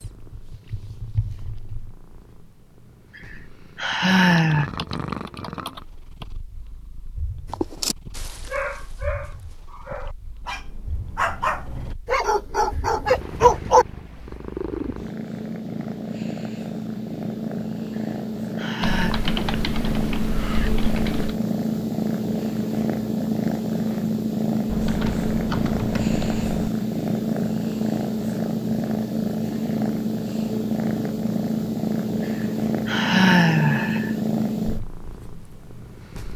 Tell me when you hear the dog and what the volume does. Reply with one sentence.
You can hear the dog from 7.5 to 13.8 s, getting louder.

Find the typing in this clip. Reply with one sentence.
You can hear the typing from 4.3 to 6.2 s, from 18.8 to 21.4 s and from 24.6 to 26.7 s.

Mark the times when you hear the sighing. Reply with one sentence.
You can hear the sighing from 3.1 to 4.7 s, from 17.9 to 19.1 s and from 32.2 to 34.1 s.